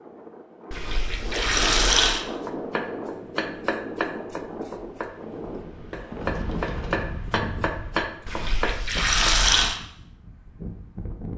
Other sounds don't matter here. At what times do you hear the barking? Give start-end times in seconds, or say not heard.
not heard.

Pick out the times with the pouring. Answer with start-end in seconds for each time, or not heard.
0.7-2.2, 8.2-9.8.